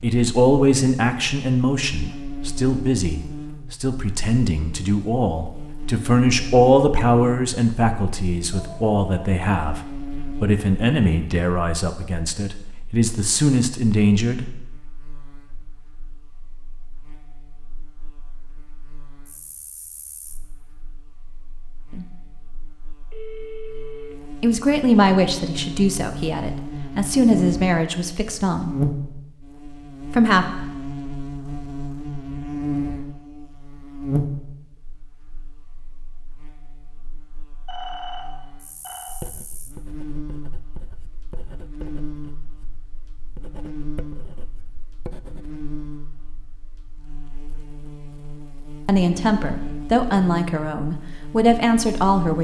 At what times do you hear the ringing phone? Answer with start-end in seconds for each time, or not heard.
8.5-9.3, 23.1-24.1, 37.6-39.1.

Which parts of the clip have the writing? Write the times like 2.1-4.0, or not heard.
39.0-46.0.